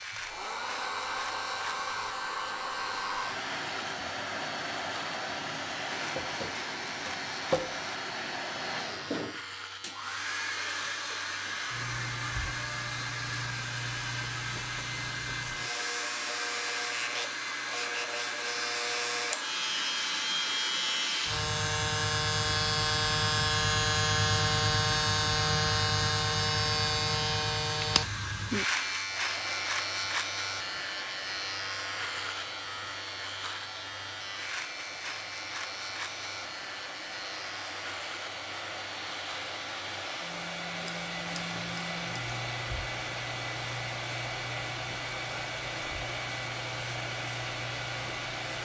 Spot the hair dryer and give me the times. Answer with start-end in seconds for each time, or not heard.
0.0-48.6.